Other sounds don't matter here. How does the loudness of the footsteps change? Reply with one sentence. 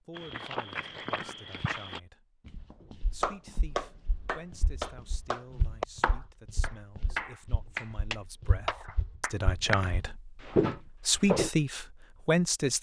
The volume of the footsteps goes down, then up.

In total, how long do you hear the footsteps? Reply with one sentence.
You can hear the footsteps for 11 seconds altogether.